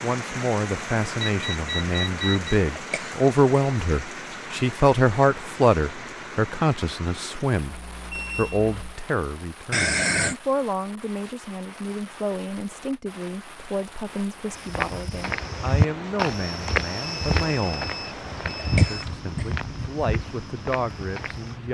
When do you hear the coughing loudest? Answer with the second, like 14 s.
10 s.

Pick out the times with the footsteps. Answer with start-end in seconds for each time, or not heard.
14.6-21.6.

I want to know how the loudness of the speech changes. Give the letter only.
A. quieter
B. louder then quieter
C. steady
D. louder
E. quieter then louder
A.